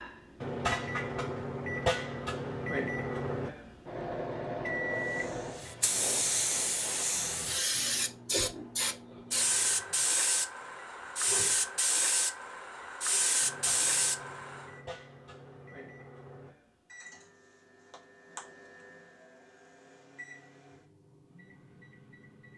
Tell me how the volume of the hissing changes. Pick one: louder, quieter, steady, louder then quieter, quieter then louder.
steady.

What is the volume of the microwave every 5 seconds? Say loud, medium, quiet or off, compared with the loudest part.
loud, medium, quiet, quiet, quiet.